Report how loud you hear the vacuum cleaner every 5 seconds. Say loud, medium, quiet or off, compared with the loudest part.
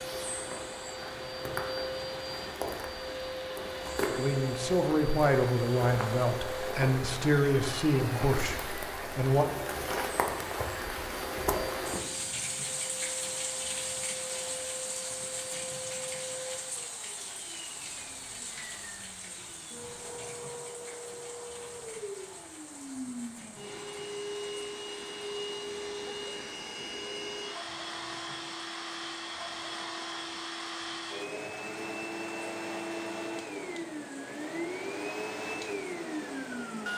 loud, loud, medium, medium, medium, loud, loud, loud.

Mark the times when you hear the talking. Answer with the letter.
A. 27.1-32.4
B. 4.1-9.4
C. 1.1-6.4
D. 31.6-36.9
B.